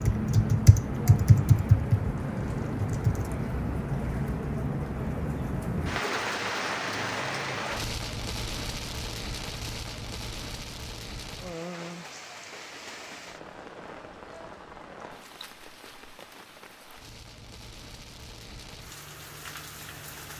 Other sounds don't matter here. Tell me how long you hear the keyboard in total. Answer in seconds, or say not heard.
3 s.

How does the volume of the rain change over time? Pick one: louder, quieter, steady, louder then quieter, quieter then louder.
quieter.